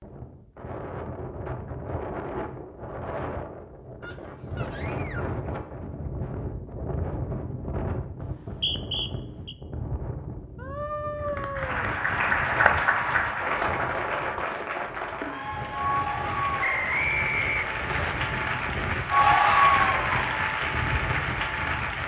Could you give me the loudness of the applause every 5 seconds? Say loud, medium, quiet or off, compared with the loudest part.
off, off, loud, loud, loud.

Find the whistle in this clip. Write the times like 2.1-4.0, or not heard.
8.2-9.6, 16.6-18.1.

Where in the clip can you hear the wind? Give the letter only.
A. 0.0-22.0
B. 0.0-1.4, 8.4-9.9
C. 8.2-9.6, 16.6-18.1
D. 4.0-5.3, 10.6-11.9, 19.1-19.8
A.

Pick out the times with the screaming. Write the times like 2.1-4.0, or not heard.
4.0-5.3, 10.6-11.9, 19.1-19.8.